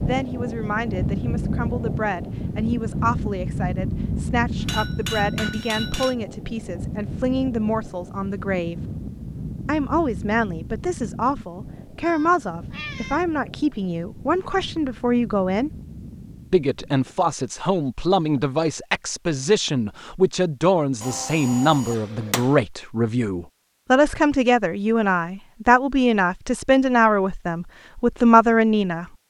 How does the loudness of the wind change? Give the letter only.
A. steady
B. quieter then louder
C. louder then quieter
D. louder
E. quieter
E.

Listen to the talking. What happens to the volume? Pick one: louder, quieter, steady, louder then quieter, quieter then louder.
louder.